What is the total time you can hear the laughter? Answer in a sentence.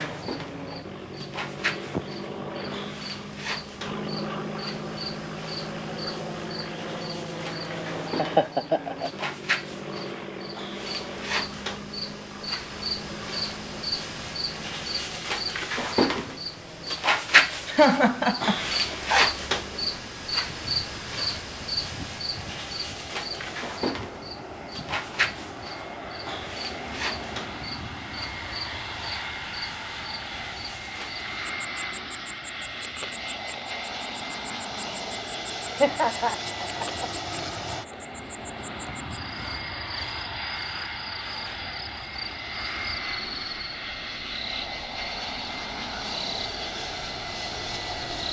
The laughter can be heard for 4 seconds in total.